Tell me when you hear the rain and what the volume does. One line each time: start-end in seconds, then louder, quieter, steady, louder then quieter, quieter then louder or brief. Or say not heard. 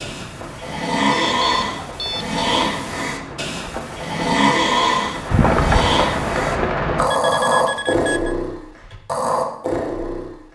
0.0-7.1 louder.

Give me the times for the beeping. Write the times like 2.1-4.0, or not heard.
1.1-2.4, 7.1-8.3.